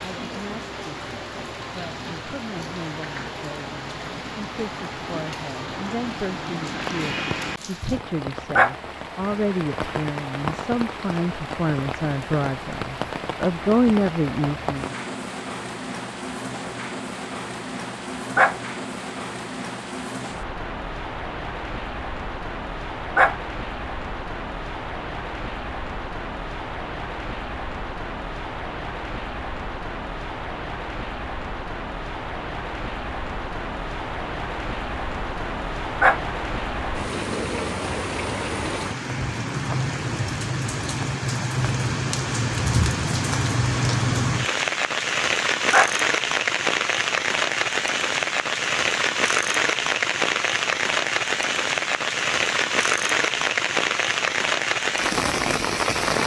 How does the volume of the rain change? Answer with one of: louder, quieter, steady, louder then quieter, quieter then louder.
louder.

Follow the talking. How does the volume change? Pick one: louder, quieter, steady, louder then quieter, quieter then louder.
louder.